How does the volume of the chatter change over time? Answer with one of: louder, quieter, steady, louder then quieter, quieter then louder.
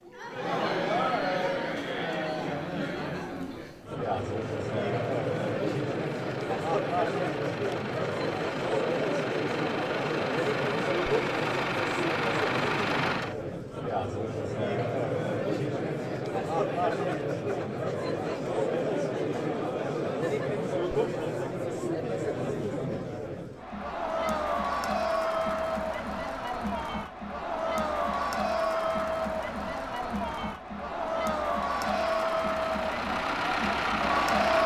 steady.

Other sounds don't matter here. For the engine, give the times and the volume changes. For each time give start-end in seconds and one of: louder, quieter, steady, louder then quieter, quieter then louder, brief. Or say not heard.
4.0-13.3 louder
31.8-34.6 brief.